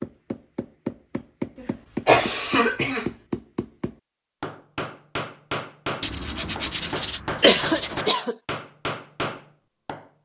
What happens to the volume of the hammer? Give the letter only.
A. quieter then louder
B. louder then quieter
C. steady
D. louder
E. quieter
C.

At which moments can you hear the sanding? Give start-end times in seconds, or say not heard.
6.0-8.1.